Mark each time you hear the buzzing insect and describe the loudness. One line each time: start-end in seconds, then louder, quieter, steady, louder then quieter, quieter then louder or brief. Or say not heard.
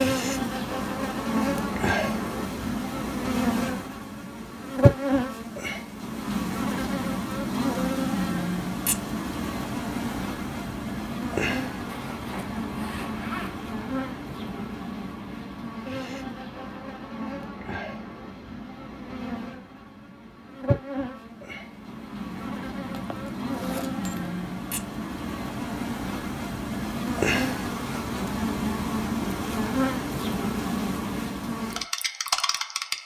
0.0-33.0 quieter then louder.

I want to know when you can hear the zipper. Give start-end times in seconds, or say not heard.
11.8-13.6, 22.9-24.3.